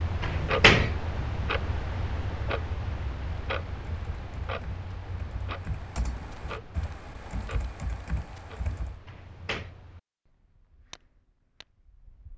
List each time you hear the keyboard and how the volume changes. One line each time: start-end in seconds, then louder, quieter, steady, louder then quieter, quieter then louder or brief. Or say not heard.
3.2-9.0 louder.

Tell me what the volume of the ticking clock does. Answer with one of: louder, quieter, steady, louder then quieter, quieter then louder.
quieter.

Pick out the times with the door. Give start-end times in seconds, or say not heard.
0.2-0.9, 9.1-9.7.